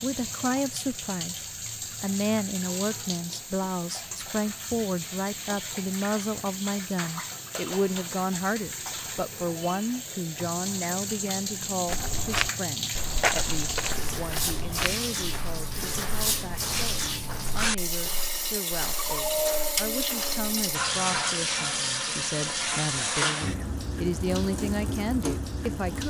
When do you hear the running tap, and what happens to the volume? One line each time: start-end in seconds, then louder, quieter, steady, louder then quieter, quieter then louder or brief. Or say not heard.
0.0-26.0 louder.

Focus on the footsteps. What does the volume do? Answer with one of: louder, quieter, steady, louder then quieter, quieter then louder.
quieter.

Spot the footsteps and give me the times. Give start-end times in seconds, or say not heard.
11.8-20.6.